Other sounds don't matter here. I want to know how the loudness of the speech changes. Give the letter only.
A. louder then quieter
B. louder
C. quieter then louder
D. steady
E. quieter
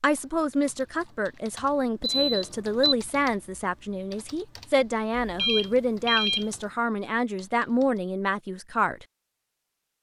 D.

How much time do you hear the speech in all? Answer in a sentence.
You can hear the speech for 9 seconds altogether.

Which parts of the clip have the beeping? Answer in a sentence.
The beeping can be heard from 2.0 to 3.0 s and from 5.2 to 6.5 s.